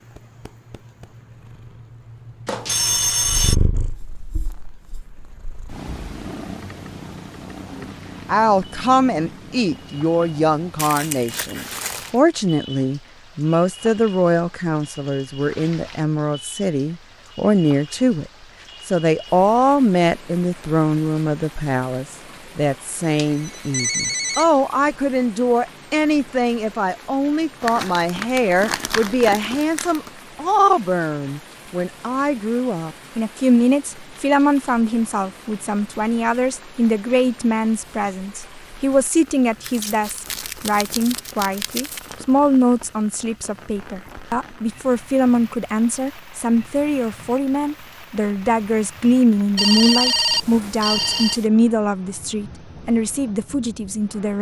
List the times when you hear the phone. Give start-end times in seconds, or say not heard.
2.5-3.5, 23.1-24.4, 49.5-51.5.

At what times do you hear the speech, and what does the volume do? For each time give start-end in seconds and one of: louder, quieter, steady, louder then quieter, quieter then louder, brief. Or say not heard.
7.8-54.3 steady.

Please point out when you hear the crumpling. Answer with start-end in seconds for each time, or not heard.
10.8-12.2, 27.6-30.1, 39.6-42.1.